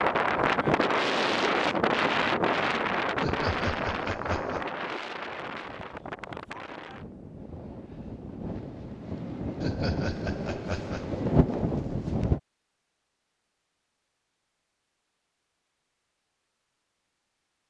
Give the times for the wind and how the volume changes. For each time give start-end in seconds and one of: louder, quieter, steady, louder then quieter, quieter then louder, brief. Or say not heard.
0.0-12.4 quieter then louder.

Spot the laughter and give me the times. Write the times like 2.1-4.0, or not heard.
3.2-4.7, 9.6-11.2.